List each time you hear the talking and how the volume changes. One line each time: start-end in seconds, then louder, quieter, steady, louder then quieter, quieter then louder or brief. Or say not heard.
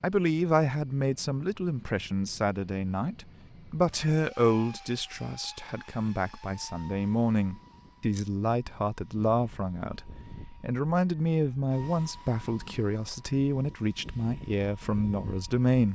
0.0-15.8 steady.